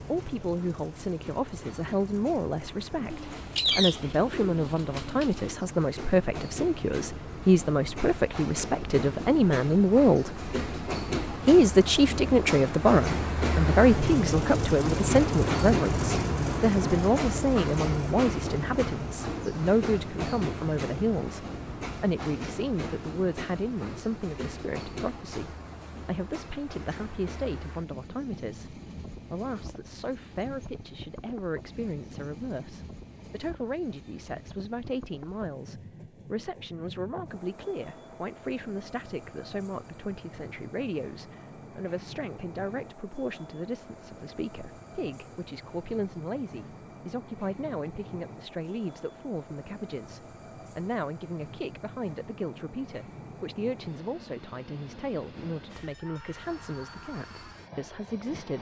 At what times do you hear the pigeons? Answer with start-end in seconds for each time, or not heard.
3.1-5.5.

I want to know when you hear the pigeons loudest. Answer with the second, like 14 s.
4 s.